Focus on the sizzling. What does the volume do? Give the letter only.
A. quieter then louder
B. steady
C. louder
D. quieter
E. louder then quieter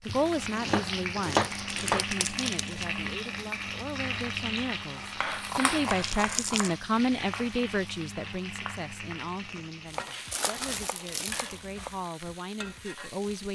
D.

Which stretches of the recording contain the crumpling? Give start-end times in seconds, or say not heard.
1.2-2.9, 5.8-6.7, 10.3-11.6.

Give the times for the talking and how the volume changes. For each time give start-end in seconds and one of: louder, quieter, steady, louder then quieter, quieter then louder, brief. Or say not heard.
0.1-13.5 louder then quieter.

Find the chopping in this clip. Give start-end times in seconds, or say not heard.
0.1-2.0, 5.2-6.8, 9.9-11.9.